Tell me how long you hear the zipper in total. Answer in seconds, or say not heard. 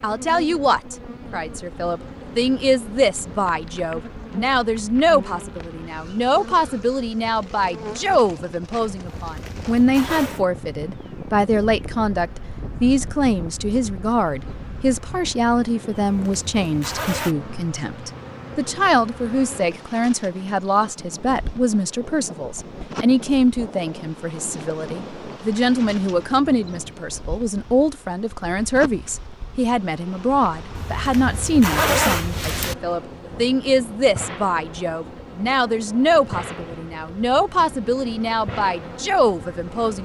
5 s.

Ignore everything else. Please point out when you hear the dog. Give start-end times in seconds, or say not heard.
not heard.